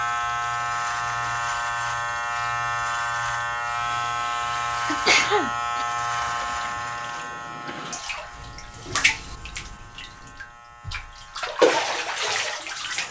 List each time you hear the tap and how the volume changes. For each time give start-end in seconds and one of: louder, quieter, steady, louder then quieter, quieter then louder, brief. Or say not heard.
0.0-13.0 louder.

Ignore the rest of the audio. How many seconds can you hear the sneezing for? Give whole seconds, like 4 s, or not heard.
2 s.